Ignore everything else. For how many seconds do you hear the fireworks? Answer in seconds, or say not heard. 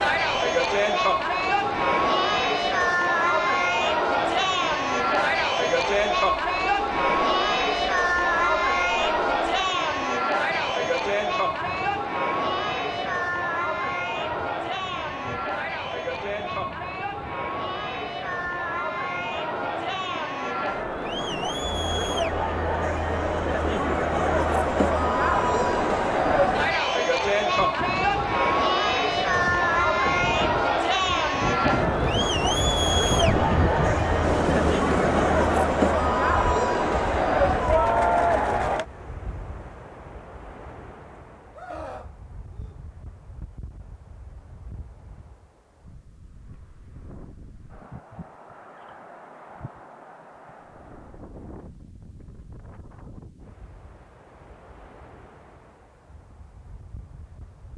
not heard.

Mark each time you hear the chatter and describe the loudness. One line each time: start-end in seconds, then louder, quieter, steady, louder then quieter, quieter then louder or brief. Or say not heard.
0.0-38.9 quieter then louder.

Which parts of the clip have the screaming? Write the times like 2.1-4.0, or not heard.
41.5-42.8.